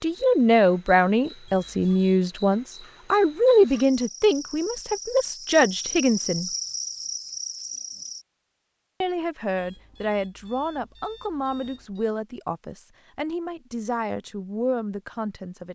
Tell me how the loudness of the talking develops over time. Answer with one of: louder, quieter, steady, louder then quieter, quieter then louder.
quieter.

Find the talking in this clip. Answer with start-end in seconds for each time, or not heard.
0.0-6.5, 9.0-15.7.